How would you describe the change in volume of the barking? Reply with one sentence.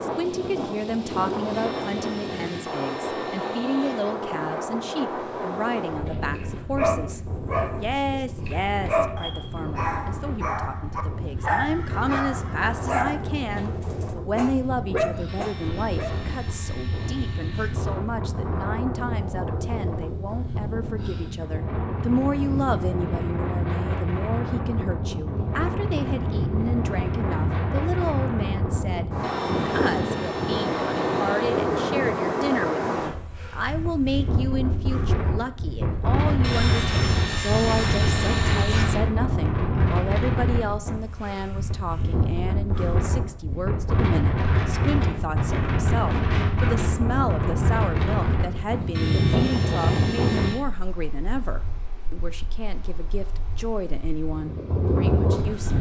The volume of the barking stays about the same.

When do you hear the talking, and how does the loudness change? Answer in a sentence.
The talking can be heard from 0.0 to 55.7 s, at a steady volume.